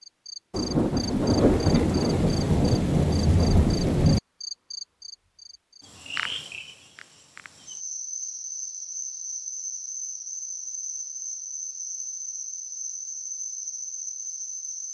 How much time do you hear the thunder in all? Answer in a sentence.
The thunder can be heard for 4 seconds in total.